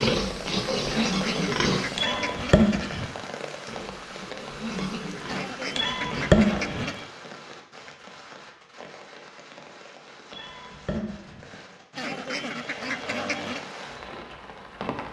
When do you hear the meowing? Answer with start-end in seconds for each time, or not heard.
1.9-3.1, 5.8-6.8, 10.3-11.4.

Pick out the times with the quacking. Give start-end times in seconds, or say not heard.
0.8-3.1, 5.2-7.1, 11.9-13.6.